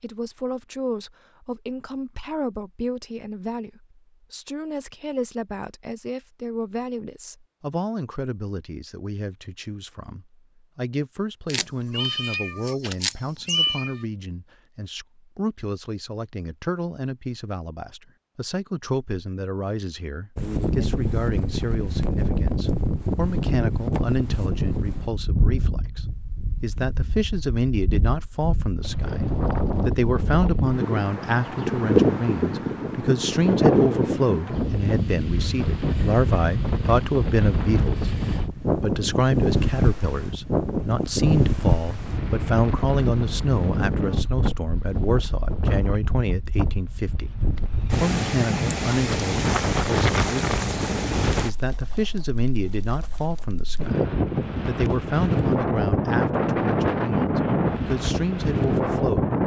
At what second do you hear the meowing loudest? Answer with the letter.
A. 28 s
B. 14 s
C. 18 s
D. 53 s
B.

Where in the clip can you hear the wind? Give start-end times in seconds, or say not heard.
20.4-59.4.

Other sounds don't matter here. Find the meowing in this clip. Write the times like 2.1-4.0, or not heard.
11.4-14.0.